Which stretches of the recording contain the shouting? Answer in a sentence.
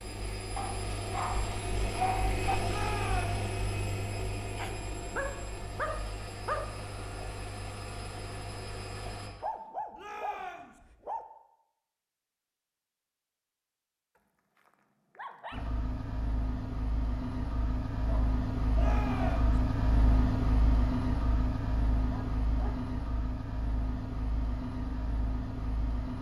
You can hear the shouting from 2.6 to 3.5 s, from 9.9 to 10.8 s and from 18.8 to 19.6 s.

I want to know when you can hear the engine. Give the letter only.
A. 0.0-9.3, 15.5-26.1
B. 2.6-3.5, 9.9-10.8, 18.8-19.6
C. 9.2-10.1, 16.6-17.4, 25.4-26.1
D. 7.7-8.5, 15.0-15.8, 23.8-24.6
A.